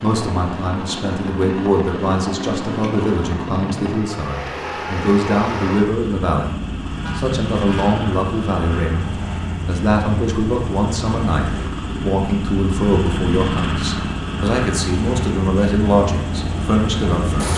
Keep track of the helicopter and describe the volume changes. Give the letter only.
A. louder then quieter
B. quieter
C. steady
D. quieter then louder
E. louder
C.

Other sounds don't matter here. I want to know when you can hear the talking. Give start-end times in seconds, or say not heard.
0.0-6.5, 7.2-17.5.